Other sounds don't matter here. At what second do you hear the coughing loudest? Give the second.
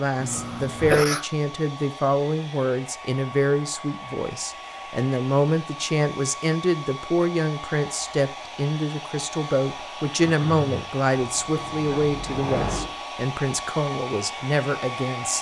1 s.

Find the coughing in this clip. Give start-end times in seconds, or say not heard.
0.2-1.2, 10.2-10.8.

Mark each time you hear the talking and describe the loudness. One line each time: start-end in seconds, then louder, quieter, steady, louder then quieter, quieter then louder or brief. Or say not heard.
0.0-15.3 steady.